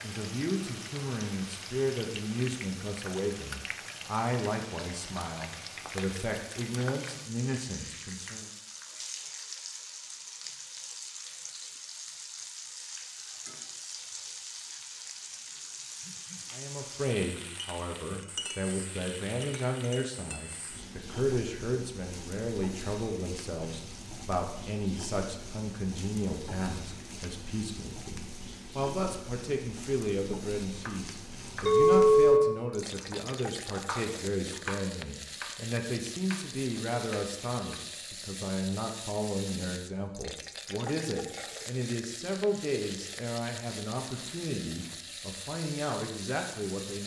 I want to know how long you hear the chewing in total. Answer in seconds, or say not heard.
not heard.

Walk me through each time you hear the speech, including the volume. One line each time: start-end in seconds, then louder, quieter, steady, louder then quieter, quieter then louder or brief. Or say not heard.
0.0-8.5 steady
16.5-47.0 steady.